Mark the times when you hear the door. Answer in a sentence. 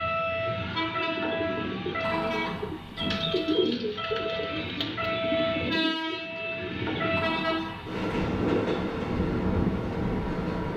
The door can be heard from 2.0 to 3.5 s and from 7.2 to 8.1 s.